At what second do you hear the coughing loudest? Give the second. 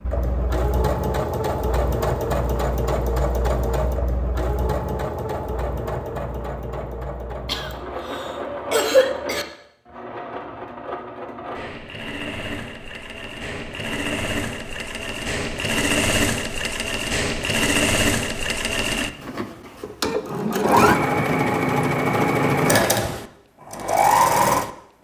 9 s.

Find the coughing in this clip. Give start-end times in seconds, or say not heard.
7.5-9.4.